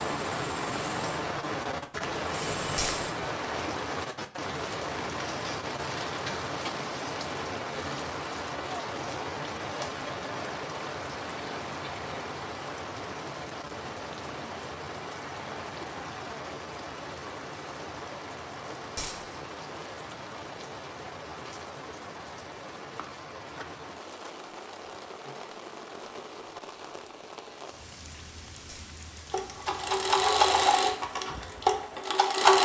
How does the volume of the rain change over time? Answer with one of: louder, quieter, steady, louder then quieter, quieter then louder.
quieter.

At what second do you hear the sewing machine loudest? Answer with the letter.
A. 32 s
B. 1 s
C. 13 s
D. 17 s
A.